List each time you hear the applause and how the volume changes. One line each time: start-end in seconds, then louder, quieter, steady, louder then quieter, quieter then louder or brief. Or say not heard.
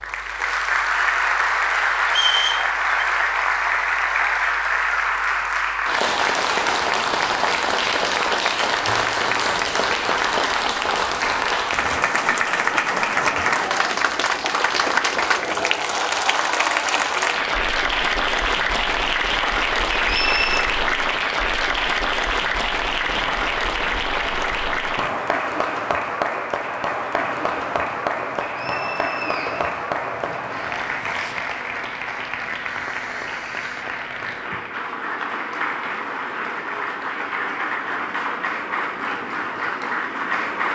0.0-40.7 quieter.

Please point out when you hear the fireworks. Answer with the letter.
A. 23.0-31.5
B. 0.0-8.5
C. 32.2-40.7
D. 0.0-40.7
A.